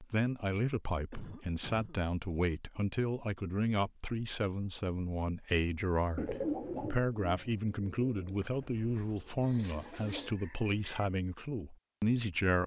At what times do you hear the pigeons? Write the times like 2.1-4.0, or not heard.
6.2-11.0.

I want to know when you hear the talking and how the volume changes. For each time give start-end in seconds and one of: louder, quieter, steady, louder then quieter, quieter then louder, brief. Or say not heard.
0.0-12.6 steady.